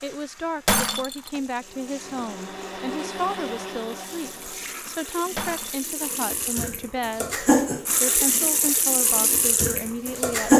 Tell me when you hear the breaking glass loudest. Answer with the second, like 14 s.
1 s.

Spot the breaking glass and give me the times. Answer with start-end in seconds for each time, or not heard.
0.7-1.4, 5.3-5.8.